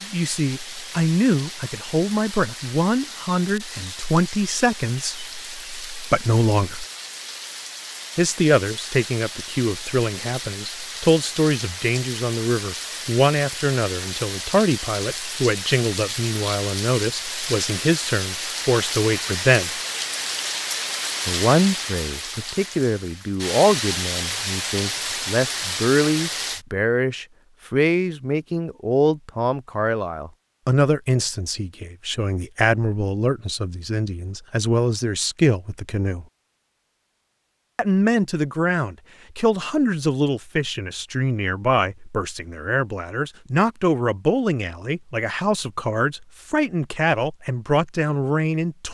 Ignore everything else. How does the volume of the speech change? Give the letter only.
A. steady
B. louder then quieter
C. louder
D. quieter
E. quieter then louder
A.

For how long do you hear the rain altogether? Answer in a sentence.
The rain can be heard for 27 seconds in total.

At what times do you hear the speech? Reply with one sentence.
The speech can be heard from 0.0 to 6.8 s, from 8.2 to 19.7 s, from 21.2 to 36.2 s and from 37.8 to 48.9 s.